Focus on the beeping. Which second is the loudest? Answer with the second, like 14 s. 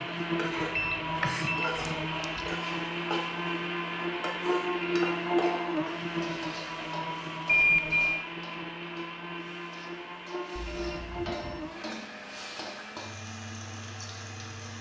8 s.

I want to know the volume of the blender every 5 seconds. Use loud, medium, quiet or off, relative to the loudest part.
loud, loud, medium.